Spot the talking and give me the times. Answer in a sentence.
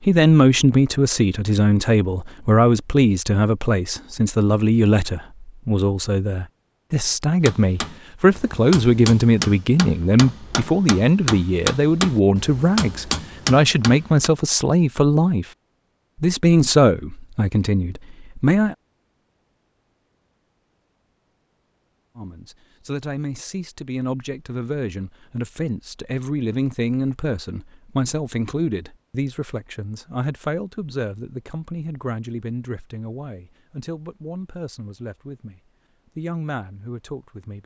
You can hear the talking from 0.0 to 15.4 s, from 16.2 to 18.8 s and from 22.1 to 37.6 s.